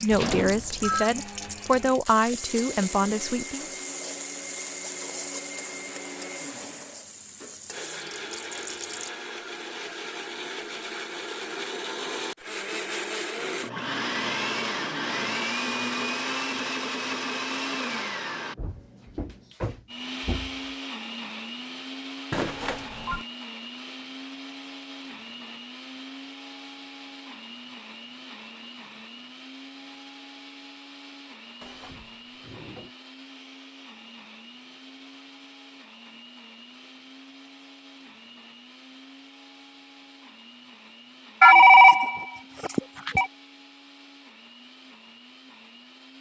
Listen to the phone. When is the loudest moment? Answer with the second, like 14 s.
42 s.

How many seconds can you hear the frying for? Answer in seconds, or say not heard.
9 s.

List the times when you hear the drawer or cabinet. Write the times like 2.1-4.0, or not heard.
0.1-1.0, 18.6-20.7, 31.6-33.0.